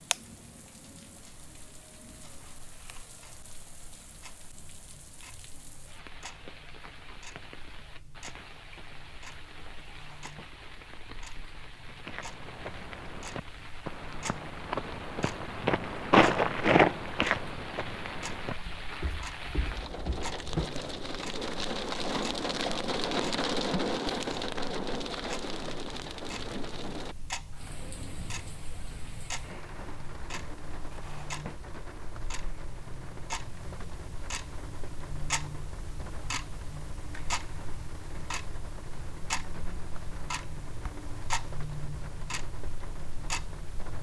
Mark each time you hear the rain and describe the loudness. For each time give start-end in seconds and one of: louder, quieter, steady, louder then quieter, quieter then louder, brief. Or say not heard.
0.0-43.9 louder then quieter.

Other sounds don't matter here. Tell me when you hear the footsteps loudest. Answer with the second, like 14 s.
16 s.